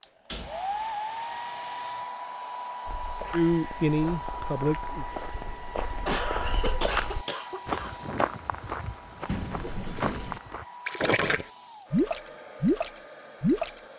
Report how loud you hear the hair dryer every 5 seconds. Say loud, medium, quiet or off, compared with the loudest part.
loud, medium, medium.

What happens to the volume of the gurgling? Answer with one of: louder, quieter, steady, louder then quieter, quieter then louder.
louder.